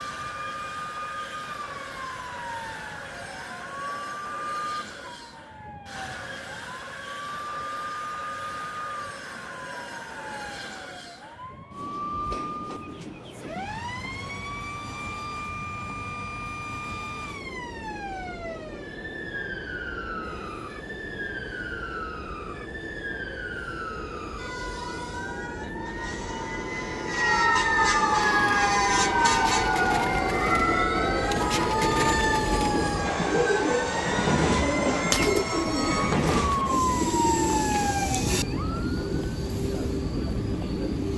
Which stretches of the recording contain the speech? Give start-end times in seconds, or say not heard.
not heard.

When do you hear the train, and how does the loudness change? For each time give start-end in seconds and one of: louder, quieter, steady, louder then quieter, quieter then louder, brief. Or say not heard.
0.0-41.1 louder.